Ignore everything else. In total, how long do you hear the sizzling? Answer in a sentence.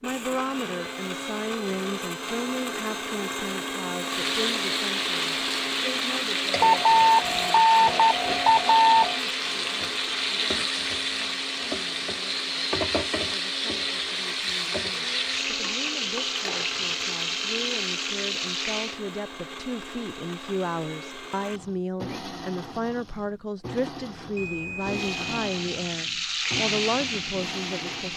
The sizzling can be heard for 18 seconds in total.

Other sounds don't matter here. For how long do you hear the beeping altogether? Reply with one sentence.
The beeping can be heard for 4 seconds in total.